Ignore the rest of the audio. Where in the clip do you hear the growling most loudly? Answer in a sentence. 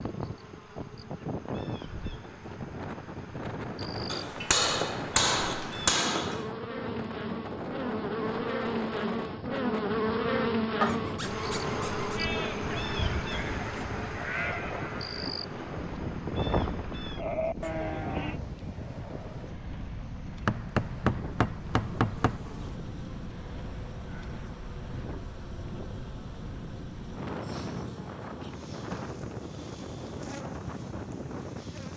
The loudest moment of the growling is at 11 seconds.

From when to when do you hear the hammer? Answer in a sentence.
The hammer can be heard from 4.1 to 6.4 s and from 20.4 to 22.4 s.